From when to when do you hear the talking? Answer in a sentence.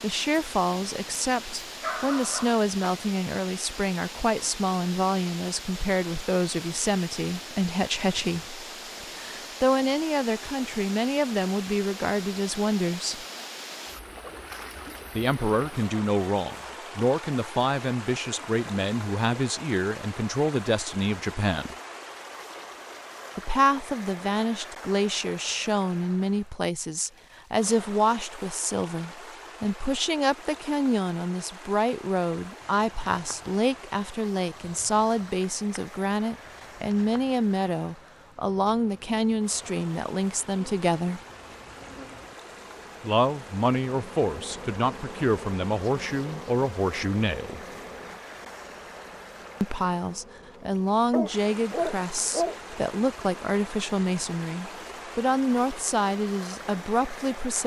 You can hear the talking from 0.0 to 13.2 s, from 15.2 to 21.8 s, from 23.4 to 41.2 s, from 43.0 to 47.6 s and from 49.6 to 57.6 s.